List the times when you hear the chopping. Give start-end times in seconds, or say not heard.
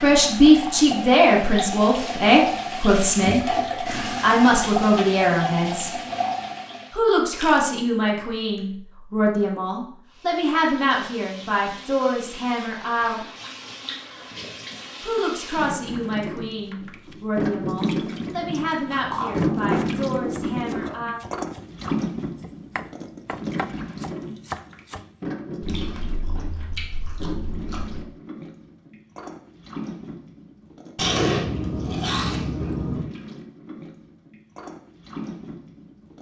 19.4-25.1.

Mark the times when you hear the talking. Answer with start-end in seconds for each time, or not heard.
0.0-3.4, 4.2-5.9, 6.9-13.2, 15.0-21.2.